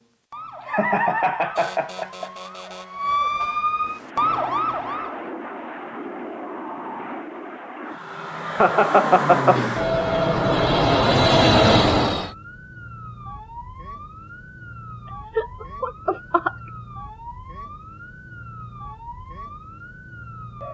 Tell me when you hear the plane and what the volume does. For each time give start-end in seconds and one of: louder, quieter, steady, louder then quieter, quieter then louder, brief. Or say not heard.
3.8-12.3 louder.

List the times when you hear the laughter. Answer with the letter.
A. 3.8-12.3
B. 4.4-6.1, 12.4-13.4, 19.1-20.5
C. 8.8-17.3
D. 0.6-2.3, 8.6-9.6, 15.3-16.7
D.